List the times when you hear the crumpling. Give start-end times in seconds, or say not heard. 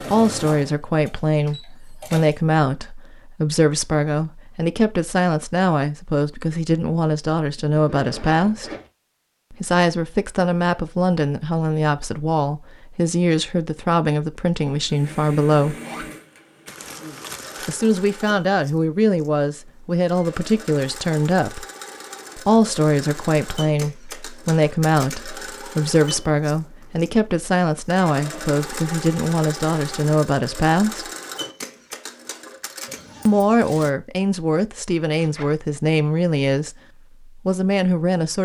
16.6-17.9.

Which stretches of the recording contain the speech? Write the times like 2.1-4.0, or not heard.
0.0-8.7, 9.5-15.8, 17.6-21.6, 22.4-31.1, 33.2-38.4.